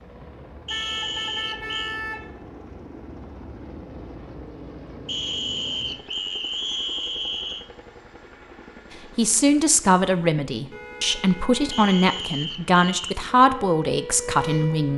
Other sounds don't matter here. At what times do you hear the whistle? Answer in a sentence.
The whistle can be heard from 0.7 to 2.0 s, from 5.0 to 7.7 s and from 11.7 to 13.1 s.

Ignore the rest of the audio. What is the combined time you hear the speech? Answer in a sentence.
The speech can be heard for 6 seconds in total.